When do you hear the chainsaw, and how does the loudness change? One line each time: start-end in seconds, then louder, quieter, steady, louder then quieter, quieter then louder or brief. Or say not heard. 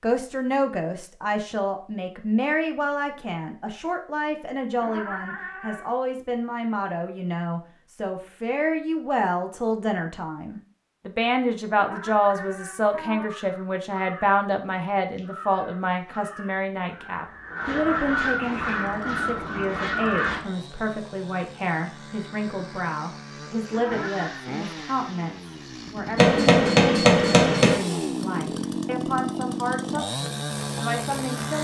18.6-31.5 louder.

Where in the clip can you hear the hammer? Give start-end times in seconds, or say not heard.
26.1-27.8.